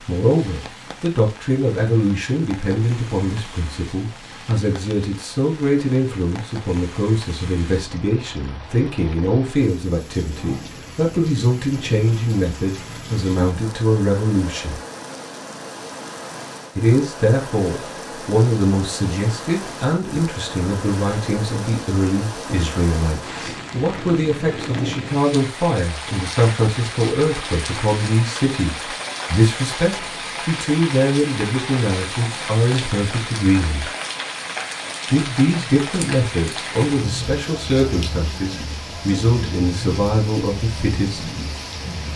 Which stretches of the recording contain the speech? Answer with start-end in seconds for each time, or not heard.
0.1-14.8, 16.8-33.9, 35.1-41.3.